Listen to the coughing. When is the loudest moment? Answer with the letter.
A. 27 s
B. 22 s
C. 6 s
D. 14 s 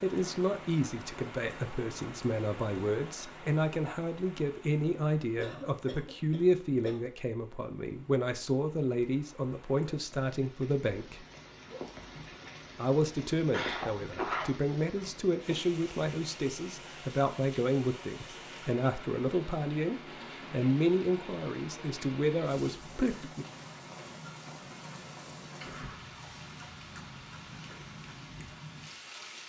D.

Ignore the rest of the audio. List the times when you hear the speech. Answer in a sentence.
The speech can be heard from 0.0 to 11.2 s and from 12.8 to 23.4 s.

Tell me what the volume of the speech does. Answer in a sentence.
The volume of the speech stays about the same.